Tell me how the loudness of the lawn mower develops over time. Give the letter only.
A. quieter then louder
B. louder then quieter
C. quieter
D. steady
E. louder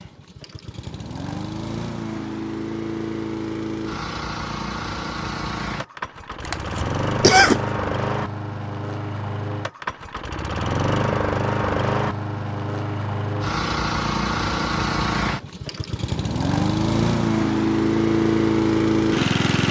E.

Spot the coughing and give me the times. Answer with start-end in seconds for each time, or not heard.
6.5-7.6.